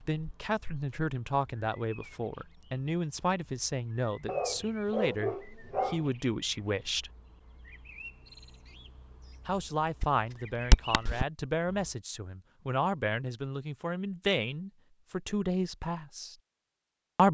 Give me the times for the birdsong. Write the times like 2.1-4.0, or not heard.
0.0-11.9.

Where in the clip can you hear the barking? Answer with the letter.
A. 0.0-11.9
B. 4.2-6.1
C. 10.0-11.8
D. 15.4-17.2
B.